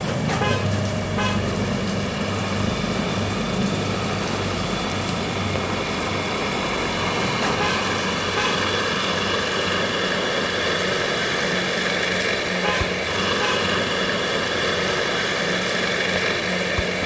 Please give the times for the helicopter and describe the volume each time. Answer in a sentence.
You can hear the helicopter from 0.0 to 17.0 s, at a steady volume.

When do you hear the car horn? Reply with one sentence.
The car horn can be heard from 0.4 to 1.5 s, from 7.6 to 8.6 s and from 12.6 to 13.7 s.